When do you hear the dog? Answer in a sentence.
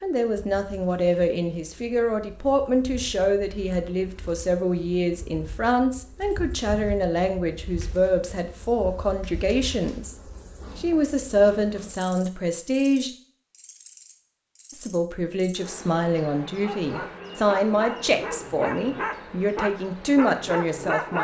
The dog can be heard from 16.4 to 21.2 s.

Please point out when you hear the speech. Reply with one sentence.
The speech can be heard from 0.0 to 10.2 s, from 10.8 to 13.1 s and from 14.7 to 21.2 s.